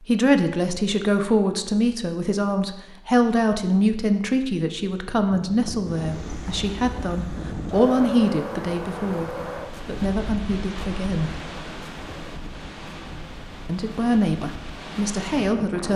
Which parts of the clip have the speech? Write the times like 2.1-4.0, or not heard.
0.1-11.4, 13.7-15.9.